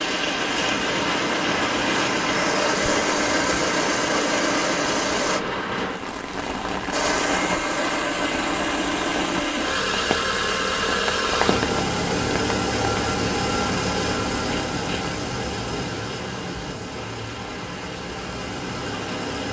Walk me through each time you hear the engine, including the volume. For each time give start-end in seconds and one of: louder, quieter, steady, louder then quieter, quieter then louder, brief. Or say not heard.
0.0-5.4 steady
6.9-19.4 quieter.